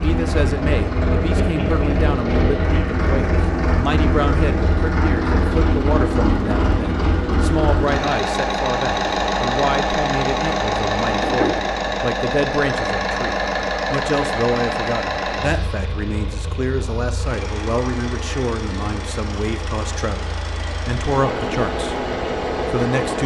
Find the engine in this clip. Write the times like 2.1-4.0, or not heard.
0.0-23.2.